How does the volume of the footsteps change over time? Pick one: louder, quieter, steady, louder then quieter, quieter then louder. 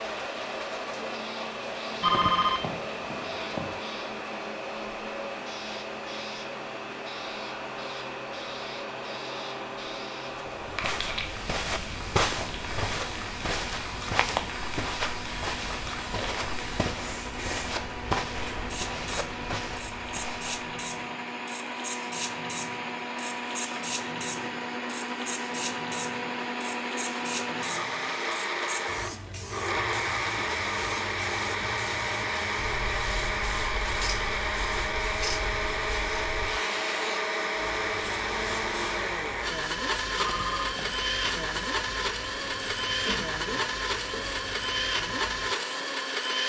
quieter.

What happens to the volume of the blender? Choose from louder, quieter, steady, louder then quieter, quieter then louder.
louder.